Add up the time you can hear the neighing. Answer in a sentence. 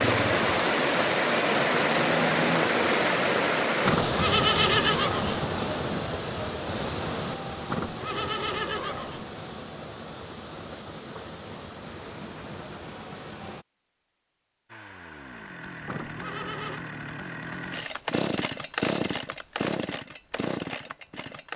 The neighing can be heard for 4 seconds in total.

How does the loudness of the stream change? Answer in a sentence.
The volume of the stream goes down.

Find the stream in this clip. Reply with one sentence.
The stream can be heard from 0.0 to 13.7 s.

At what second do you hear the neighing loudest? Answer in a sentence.
The loudest moment of the neighing is at 5 seconds.